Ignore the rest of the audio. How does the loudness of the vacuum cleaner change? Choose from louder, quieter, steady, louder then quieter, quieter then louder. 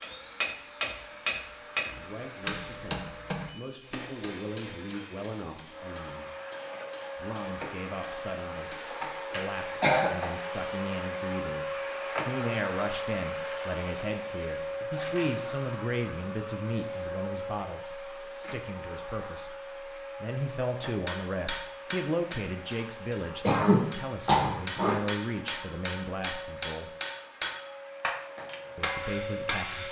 louder then quieter.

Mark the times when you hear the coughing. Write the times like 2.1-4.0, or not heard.
8.9-10.2, 23.4-25.0.